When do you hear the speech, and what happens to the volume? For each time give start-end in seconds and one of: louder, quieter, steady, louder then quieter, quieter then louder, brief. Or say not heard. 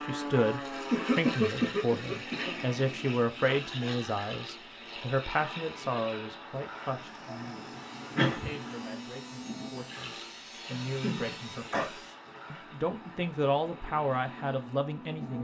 0.0-15.3 quieter then louder.